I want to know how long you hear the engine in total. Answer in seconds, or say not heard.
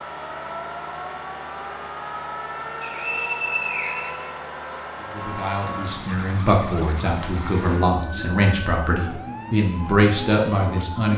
11 s.